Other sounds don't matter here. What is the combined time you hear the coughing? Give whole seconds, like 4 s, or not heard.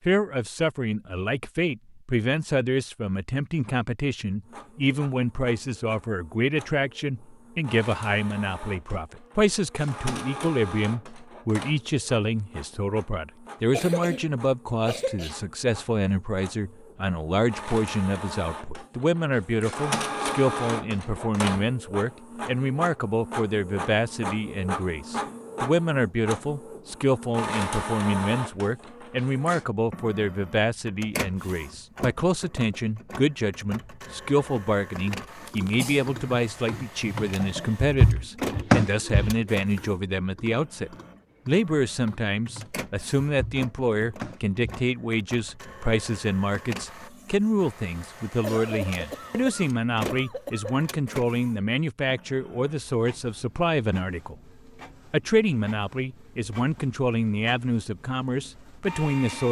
5 s.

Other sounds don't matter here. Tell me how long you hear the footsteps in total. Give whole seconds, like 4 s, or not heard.
not heard.